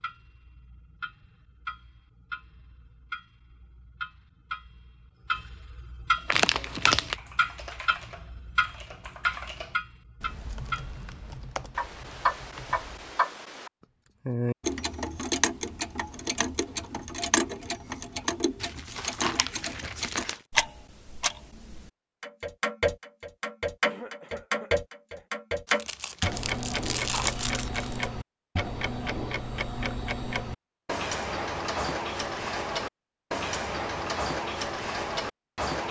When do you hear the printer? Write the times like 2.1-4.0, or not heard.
not heard.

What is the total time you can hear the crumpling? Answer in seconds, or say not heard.
5 s.